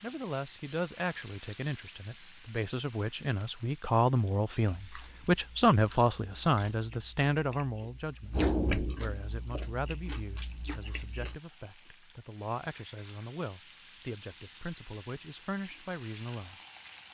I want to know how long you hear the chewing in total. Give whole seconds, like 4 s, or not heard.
7 s.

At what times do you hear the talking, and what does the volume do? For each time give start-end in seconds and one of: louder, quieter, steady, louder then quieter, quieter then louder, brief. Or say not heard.
0.0-16.6 louder then quieter.